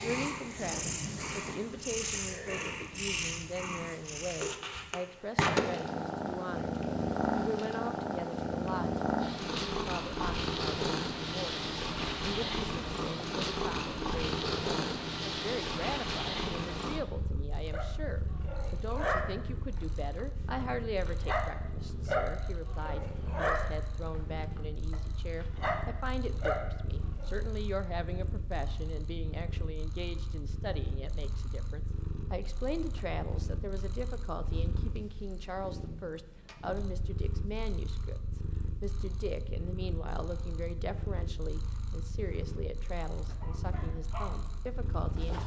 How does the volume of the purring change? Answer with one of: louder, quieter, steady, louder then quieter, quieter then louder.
quieter.